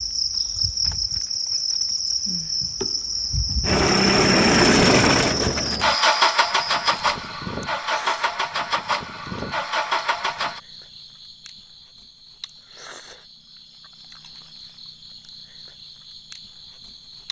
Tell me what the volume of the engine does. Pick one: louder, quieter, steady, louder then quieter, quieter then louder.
quieter.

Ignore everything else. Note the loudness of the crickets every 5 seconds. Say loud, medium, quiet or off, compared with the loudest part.
loud, medium, quiet, quiet.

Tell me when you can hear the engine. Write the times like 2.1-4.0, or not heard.
3.6-10.6.